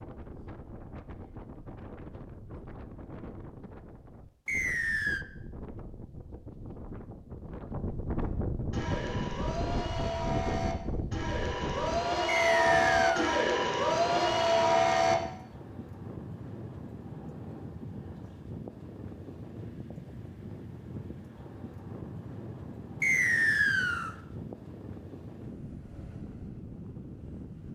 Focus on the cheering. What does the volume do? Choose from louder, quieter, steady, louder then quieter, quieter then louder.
louder.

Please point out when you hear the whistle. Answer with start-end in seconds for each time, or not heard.
4.5-5.2, 12.2-13.2, 23.0-24.1.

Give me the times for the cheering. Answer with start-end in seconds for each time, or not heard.
8.7-15.2.